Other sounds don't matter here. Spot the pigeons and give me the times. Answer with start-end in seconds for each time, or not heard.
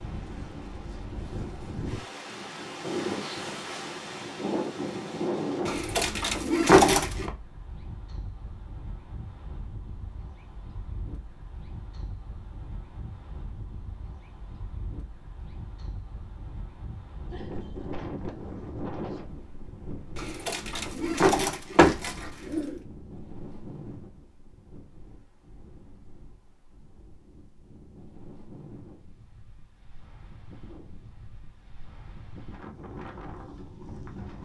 5.7-7.3, 20.1-22.8.